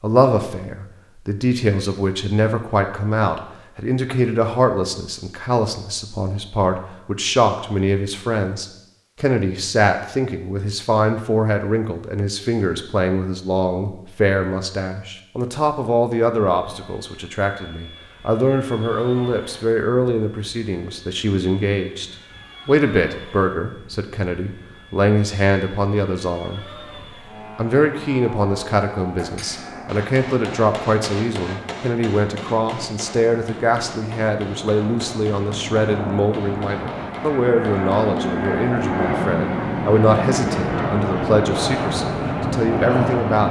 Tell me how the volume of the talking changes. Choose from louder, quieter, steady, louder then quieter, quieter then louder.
steady.